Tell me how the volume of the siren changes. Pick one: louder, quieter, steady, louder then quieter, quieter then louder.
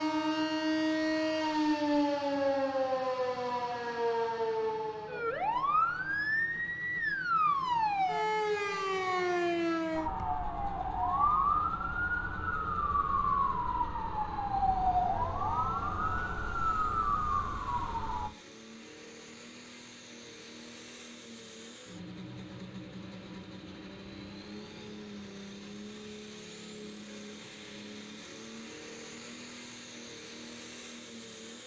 steady.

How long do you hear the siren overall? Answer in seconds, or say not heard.
18 s.